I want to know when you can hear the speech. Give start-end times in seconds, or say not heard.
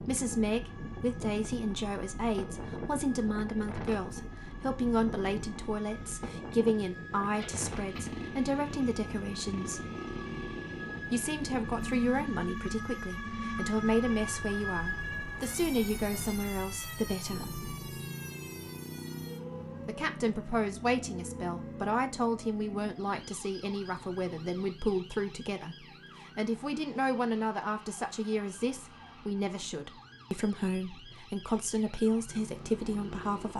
0.0-9.8, 11.1-17.6, 19.9-33.5.